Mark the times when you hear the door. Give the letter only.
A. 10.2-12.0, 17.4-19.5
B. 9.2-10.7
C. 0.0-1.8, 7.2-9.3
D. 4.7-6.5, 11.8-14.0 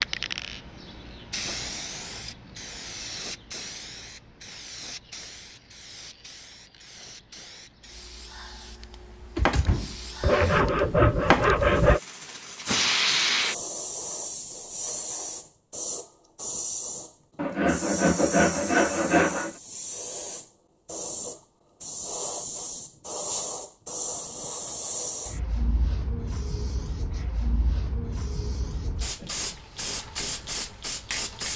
B.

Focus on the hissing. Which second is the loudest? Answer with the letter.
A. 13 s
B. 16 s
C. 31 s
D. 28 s
A.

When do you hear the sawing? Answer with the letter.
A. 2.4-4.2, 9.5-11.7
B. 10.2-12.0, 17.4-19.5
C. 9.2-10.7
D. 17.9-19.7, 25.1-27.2
B.